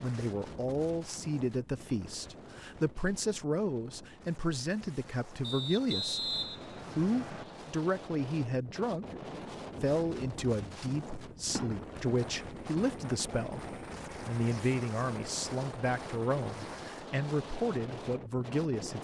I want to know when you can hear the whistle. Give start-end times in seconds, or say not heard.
5.4-7.5.